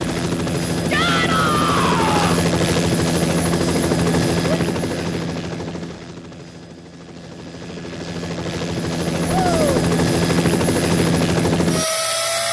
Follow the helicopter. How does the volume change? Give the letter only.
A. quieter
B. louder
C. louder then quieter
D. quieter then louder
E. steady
D.